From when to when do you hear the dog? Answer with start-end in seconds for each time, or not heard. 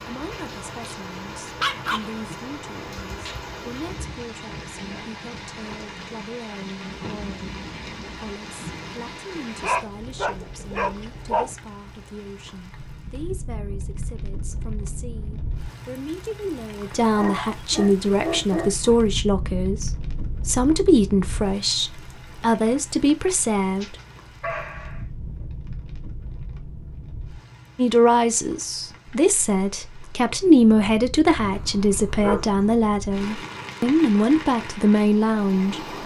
1.6-2.4, 9.6-11.6, 17.1-19.0, 23.8-25.1, 31.4-32.8.